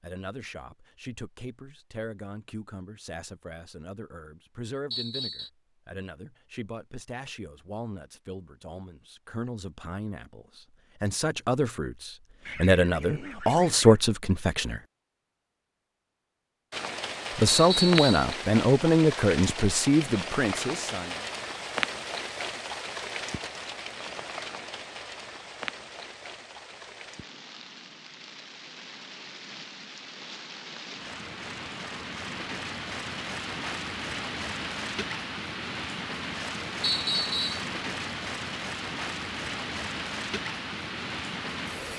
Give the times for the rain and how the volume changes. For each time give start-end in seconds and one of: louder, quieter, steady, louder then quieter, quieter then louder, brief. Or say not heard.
16.7-41.9 quieter then louder.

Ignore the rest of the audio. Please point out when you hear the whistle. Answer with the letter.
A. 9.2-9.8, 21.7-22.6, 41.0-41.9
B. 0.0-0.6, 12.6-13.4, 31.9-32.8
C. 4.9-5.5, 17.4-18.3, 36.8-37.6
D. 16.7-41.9
C.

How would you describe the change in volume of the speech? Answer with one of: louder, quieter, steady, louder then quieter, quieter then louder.
louder.